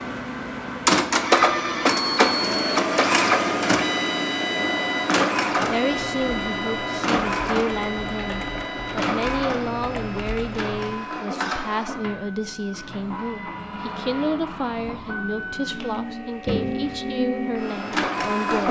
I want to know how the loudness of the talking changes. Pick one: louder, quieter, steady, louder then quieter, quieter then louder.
steady.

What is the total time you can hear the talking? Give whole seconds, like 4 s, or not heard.
13 s.